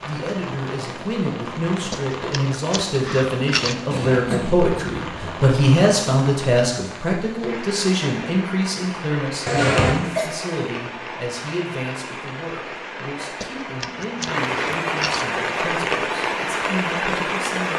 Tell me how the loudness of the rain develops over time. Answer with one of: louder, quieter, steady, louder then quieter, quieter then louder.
louder.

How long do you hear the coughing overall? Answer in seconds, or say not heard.
2 s.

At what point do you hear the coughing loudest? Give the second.
10 s.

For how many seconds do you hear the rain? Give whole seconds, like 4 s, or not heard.
18 s.